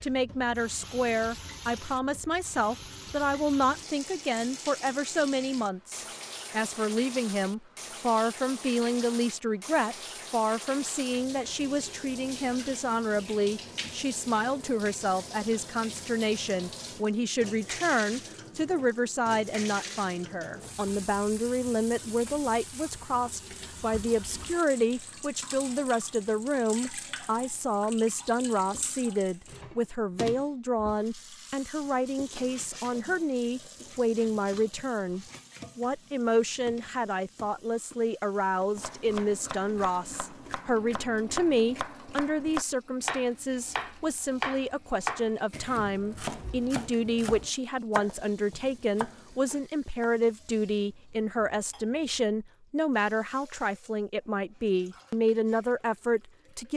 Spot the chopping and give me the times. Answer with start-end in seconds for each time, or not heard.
38.8-50.1.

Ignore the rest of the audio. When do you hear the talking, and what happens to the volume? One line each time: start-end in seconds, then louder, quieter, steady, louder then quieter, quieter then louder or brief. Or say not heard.
0.0-56.7 steady.